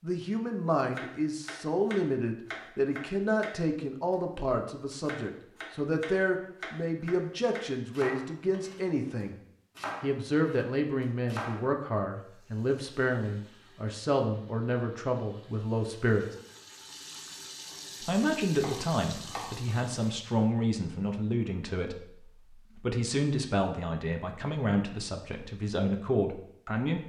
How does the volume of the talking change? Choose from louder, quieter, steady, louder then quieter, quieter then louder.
steady.